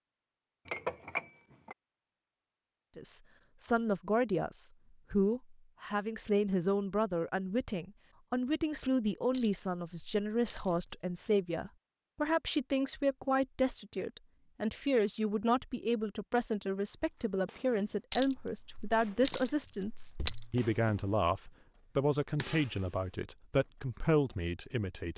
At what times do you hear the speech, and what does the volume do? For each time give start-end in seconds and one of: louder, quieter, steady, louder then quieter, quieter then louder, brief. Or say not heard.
3.0-25.1 steady.